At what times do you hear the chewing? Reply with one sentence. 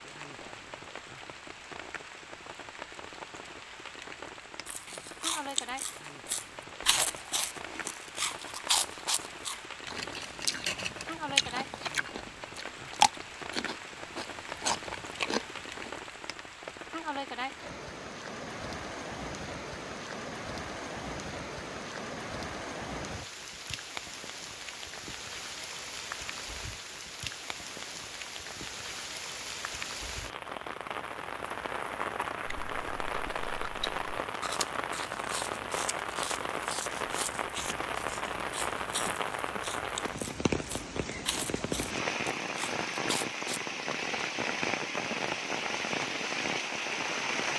The chewing can be heard from 4.7 to 15.9 s and from 32.5 to 43.6 s.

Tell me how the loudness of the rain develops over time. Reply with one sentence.
The volume of the rain goes up.